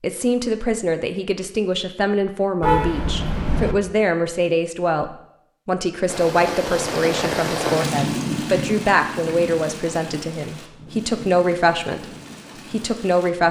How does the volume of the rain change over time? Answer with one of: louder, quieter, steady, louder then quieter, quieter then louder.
quieter.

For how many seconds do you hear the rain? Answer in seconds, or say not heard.
7 s.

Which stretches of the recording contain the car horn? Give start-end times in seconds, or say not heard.
2.6-3.8.